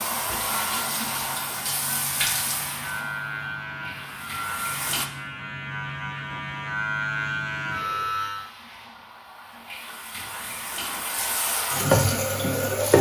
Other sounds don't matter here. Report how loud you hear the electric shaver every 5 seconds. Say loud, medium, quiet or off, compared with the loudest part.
medium, loud, off.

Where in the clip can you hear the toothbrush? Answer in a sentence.
You can't hear the toothbrush here.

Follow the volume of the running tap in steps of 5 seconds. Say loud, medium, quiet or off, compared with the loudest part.
medium, quiet, loud.